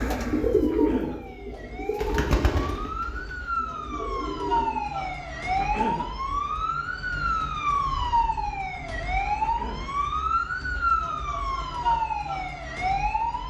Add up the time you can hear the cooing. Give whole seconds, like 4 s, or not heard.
5 s.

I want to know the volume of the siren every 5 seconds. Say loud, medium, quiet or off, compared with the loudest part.
medium, loud, loud.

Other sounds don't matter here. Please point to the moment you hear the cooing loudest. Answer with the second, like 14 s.
1 s.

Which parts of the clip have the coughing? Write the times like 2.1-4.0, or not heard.
0.7-1.2, 5.5-6.1, 9.4-9.9.